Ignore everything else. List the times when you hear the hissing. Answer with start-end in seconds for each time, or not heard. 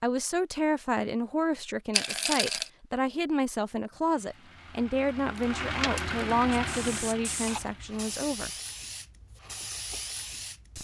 6.5-10.8.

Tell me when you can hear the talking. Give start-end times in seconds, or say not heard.
0.0-8.5.